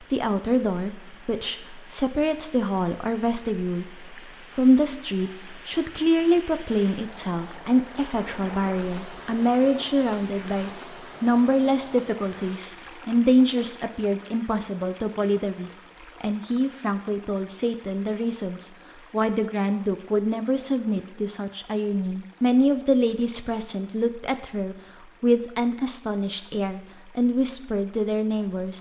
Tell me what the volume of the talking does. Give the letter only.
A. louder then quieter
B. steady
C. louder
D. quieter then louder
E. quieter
B.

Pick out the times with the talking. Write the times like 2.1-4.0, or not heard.
0.1-28.7.